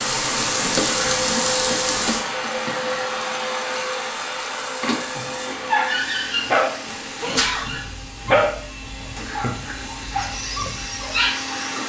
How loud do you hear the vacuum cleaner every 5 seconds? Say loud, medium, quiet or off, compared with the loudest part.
loud, medium, medium.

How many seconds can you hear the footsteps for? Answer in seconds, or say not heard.
not heard.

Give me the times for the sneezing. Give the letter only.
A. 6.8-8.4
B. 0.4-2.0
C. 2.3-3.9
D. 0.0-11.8
A.